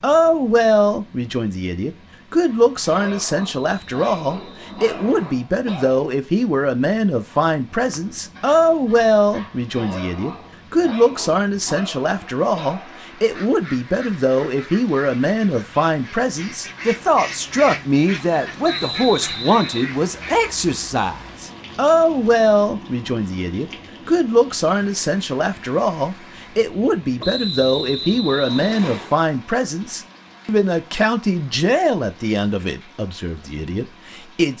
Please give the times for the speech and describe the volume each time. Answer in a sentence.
You can hear the speech from 0.0 to 34.5 s, at a steady volume.